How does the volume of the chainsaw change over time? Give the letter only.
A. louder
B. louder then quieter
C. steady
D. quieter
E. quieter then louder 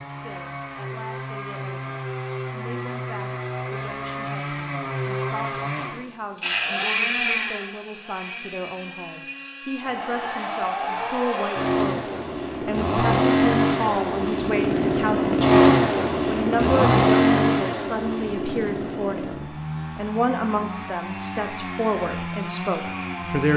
B.